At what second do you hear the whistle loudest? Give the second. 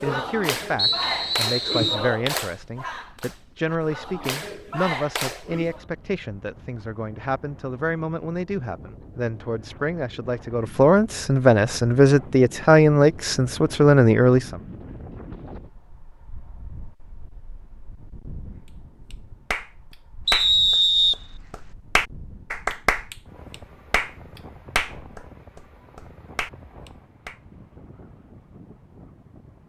21 s.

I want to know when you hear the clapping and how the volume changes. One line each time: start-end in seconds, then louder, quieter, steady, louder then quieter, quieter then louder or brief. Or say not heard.
0.0-5.8 quieter then louder
19.1-27.4 quieter.